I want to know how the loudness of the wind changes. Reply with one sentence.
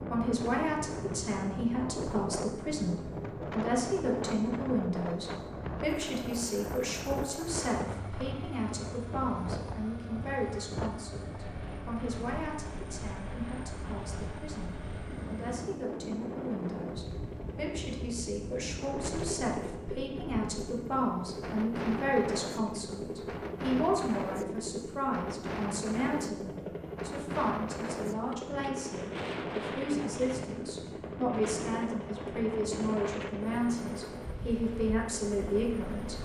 The loudness of the wind stays about the same.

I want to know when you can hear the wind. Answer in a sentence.
You can hear the wind from 0.0 to 36.1 s.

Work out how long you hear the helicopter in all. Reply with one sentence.
You can hear the helicopter for 36 seconds altogether.